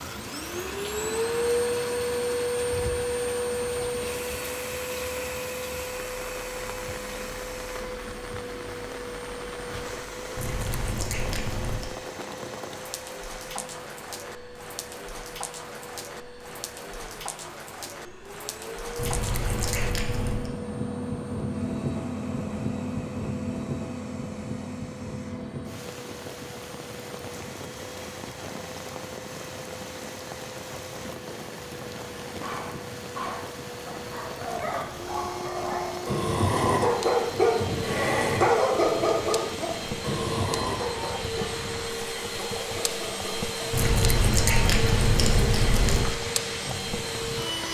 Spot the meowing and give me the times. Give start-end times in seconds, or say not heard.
10.3-11.9, 18.9-20.5, 43.7-46.1.